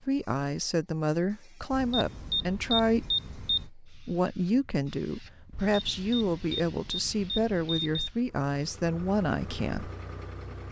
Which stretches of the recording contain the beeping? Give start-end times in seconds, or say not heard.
1.7-3.7, 5.5-8.1.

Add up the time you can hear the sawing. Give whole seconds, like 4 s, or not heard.
not heard.